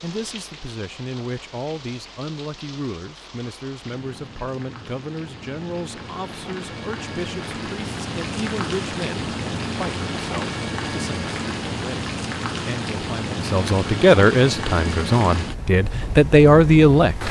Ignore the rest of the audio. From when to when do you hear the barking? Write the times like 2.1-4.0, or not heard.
not heard.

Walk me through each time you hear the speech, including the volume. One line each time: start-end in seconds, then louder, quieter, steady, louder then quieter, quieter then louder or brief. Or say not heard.
0.0-17.2 louder.